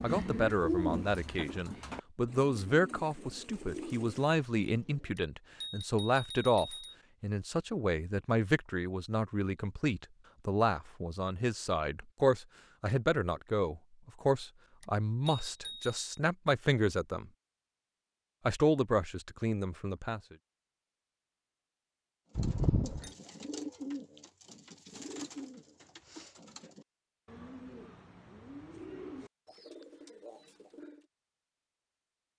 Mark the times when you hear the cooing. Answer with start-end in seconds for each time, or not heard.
0.0-5.1, 22.4-31.1.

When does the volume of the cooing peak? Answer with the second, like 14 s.
1 s.